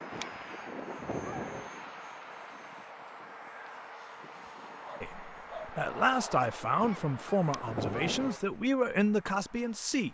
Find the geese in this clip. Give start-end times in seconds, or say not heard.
0.1-1.7, 6.8-8.4.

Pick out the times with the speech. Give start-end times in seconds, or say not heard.
5.0-10.0.